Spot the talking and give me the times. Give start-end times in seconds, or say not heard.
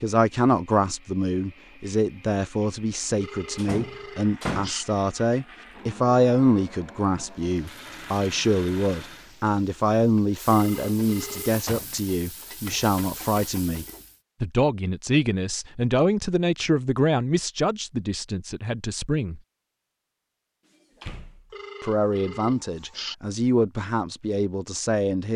0.0-19.4, 21.8-25.3.